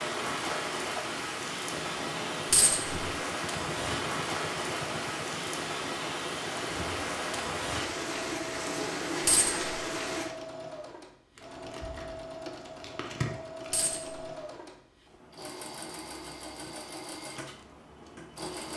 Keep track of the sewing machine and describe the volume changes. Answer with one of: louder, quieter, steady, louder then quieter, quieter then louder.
steady.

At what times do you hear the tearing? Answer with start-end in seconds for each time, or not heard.
11.3-14.2.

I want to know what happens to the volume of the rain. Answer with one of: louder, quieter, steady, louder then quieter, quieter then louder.
steady.